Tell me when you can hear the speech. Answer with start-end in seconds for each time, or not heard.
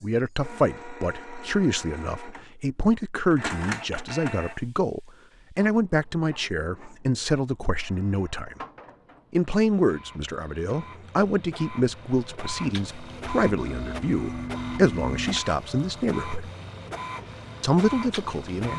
0.0-8.6, 9.3-16.5, 17.6-18.7.